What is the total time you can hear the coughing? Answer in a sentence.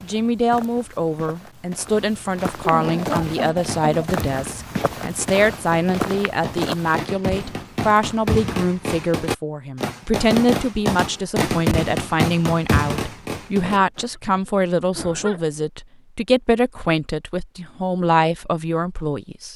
You can hear the coughing for 3 seconds altogether.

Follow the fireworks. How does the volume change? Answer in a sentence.
The volume of the fireworks goes up.